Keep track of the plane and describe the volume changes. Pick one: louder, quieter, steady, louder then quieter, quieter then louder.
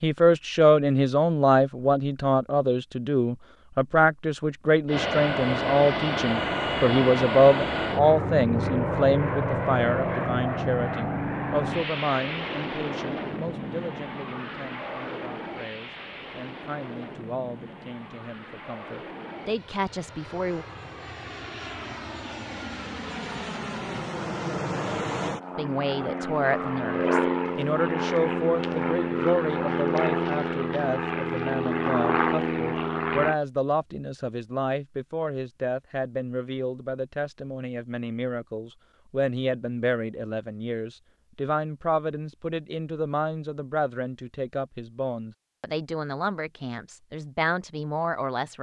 quieter then louder.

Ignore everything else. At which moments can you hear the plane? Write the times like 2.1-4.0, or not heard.
4.8-33.4.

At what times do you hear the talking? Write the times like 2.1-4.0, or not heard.
0.0-20.6, 25.6-48.5.